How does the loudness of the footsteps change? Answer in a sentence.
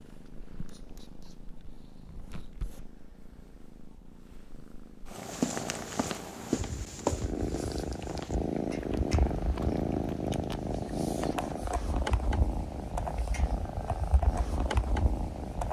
The loudness of the footsteps goes up, then down.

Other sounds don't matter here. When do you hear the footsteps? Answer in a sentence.
The footsteps can be heard from 5.2 to 10.3 s.